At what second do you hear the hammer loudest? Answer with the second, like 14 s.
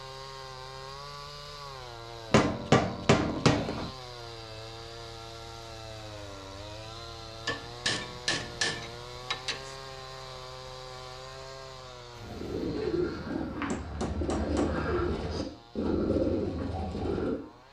3 s.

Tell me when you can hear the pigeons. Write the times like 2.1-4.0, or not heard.
12.2-17.4.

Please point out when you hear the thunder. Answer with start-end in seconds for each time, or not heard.
12.1-13.7.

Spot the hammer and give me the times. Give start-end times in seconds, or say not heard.
2.3-3.9, 7.5-9.8, 13.3-14.8.